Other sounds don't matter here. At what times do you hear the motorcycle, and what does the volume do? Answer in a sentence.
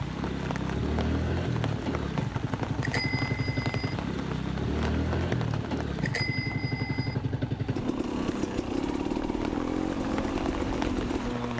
The motorcycle can be heard from 0.0 to 11.5 s, at a steady volume.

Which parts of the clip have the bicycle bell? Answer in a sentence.
The bicycle bell can be heard from 2.8 to 4.0 s and from 6.0 to 7.2 s.